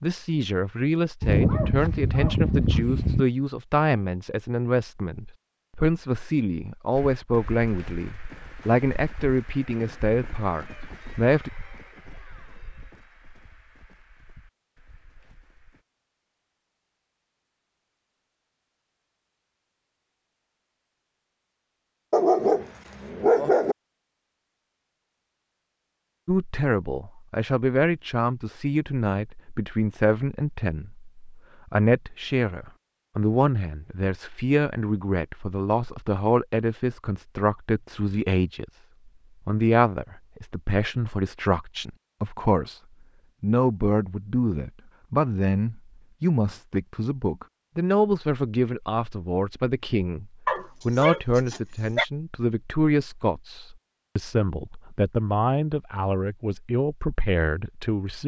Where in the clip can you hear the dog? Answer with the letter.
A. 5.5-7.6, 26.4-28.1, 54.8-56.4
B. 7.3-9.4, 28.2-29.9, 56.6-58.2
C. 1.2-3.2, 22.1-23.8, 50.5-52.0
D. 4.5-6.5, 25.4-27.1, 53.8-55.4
C.